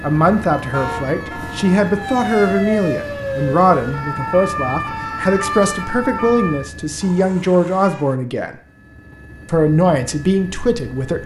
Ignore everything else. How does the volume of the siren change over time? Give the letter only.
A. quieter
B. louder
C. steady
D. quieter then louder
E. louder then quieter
B.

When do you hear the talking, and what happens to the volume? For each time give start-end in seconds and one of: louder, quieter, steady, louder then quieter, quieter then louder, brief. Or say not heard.
0.0-8.6 steady
9.4-11.2 brief.